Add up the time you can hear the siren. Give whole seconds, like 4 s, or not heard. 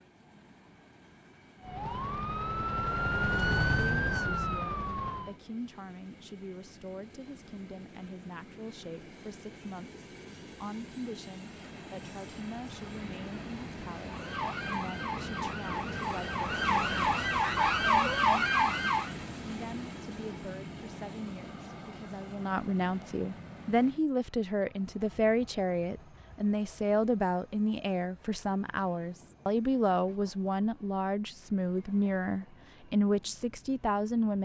9 s.